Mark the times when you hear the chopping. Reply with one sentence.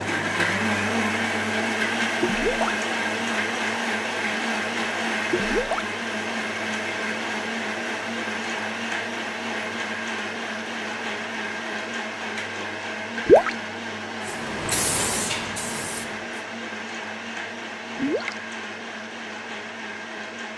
You can't hear the chopping here.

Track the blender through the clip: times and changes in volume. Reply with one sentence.
The blender can be heard from 0.0 to 20.5 s, getting quieter.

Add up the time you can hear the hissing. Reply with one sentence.
The hissing can be heard for 2 seconds in total.